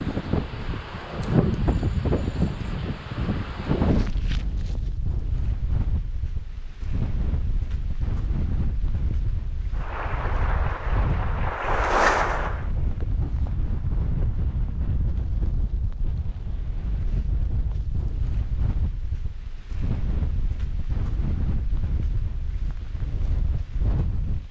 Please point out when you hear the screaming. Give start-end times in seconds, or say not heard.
not heard.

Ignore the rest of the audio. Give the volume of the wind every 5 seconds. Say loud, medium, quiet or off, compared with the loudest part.
loud, medium, medium, medium, medium.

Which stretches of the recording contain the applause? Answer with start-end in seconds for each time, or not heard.
9.7-12.7.